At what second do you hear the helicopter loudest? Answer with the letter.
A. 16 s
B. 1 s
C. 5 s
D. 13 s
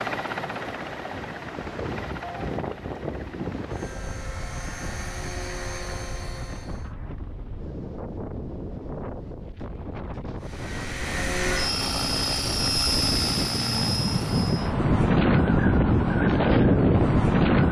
D.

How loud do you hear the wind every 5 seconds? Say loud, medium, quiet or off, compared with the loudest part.
quiet, quiet, medium, loud.